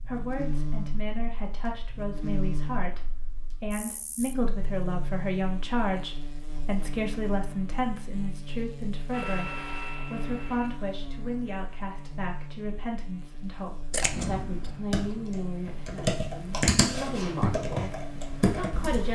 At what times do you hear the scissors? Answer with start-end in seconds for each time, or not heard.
13.9-14.7.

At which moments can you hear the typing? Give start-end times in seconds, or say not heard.
14.0-19.1.